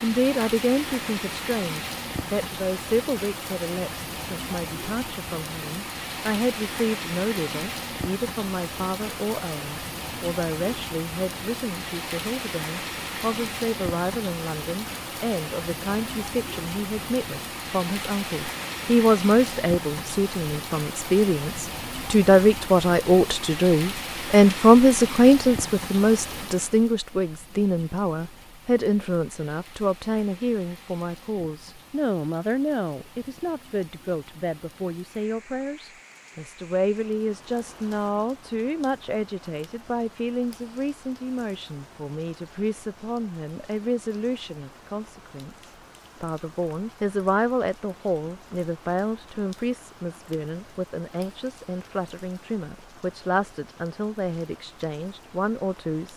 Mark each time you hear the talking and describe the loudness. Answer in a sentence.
You can hear the talking from 0.0 to 56.1 s, getting louder then quieter.